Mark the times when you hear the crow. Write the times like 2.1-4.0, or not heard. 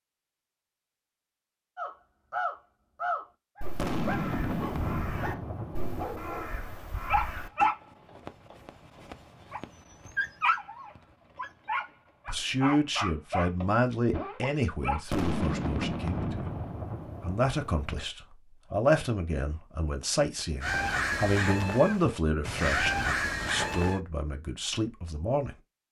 1.8-7.7, 20.6-24.0.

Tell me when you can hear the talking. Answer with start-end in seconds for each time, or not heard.
12.2-16.4, 17.2-25.6.